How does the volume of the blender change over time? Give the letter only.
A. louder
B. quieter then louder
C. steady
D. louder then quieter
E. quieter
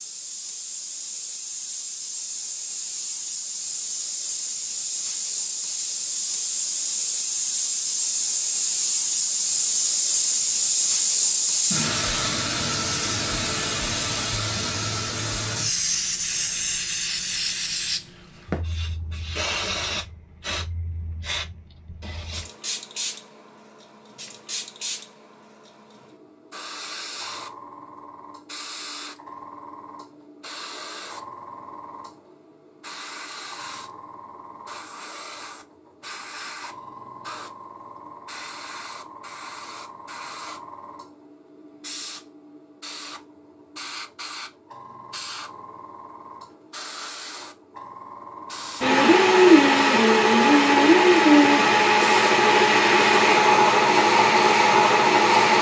C.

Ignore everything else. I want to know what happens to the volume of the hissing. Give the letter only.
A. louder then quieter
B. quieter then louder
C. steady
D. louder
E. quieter
E.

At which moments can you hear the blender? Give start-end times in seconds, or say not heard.
48.8-55.5.